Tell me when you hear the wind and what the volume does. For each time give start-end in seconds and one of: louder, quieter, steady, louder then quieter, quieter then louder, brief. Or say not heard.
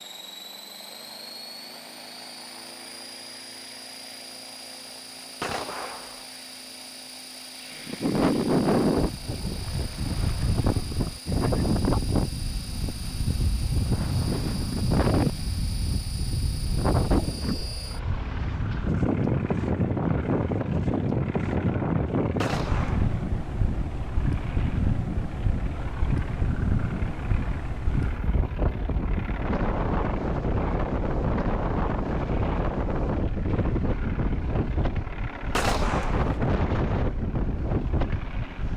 7.8-38.7 steady.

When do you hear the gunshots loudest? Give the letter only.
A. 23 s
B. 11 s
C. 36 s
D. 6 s
C.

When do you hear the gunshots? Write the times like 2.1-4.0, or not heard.
5.4-6.2, 22.4-23.2, 35.5-36.4.